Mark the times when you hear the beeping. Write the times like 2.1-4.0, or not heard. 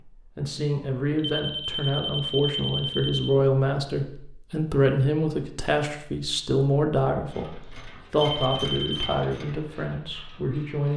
1.2-3.3, 8.3-9.2.